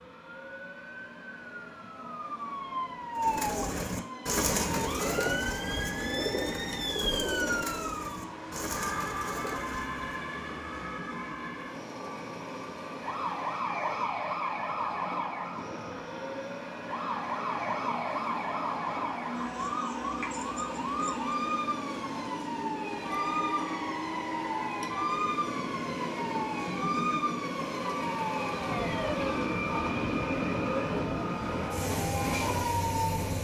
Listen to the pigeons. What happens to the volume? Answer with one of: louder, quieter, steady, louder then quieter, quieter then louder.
quieter.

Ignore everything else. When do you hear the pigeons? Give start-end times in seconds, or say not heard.
3.1-10.0.